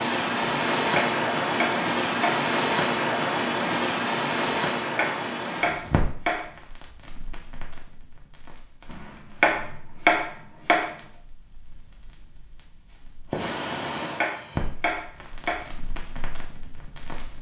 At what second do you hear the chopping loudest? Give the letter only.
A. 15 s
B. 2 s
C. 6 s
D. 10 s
D.